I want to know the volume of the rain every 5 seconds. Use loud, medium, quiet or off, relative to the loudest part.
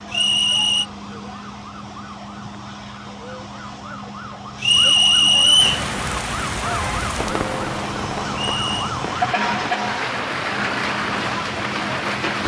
off, loud, loud.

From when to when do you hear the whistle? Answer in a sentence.
You can hear the whistle from 0.1 to 0.8 s, from 4.6 to 5.8 s and from 8.3 to 8.8 s.